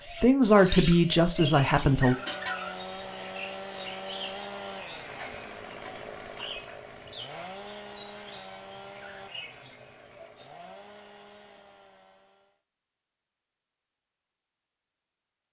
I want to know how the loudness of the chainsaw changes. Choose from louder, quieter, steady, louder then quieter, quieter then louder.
quieter.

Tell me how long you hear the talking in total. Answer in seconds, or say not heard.
2 s.